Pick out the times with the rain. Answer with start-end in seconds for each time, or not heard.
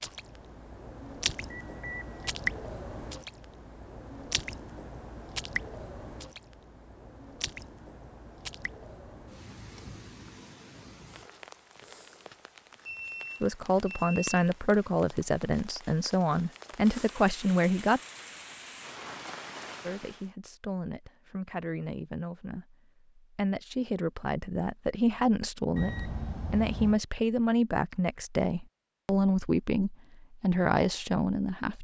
0.0-20.3.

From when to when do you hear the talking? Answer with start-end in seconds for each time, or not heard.
13.4-18.0, 19.8-31.8.